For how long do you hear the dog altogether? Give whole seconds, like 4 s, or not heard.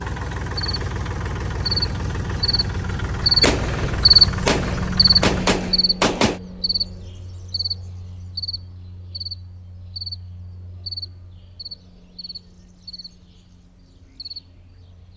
not heard.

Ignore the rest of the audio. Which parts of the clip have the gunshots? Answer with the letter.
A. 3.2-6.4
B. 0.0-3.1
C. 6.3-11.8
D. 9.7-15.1
A.